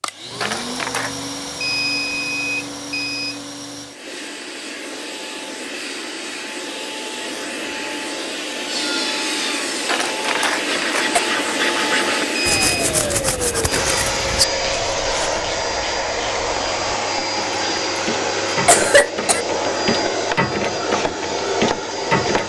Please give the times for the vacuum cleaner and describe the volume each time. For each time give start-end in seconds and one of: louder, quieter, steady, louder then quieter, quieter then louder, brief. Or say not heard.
0.0-22.4 louder.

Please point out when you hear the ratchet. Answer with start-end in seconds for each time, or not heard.
14.4-22.4.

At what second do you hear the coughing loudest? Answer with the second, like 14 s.
19 s.